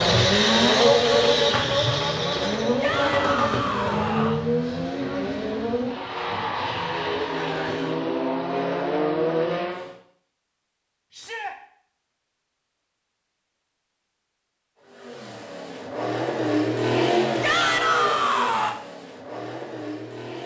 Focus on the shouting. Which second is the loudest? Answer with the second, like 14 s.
18 s.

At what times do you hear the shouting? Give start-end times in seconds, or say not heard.
2.8-4.5, 11.1-11.6, 17.4-18.8.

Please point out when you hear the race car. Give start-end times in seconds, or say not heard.
0.0-9.9, 14.8-20.4.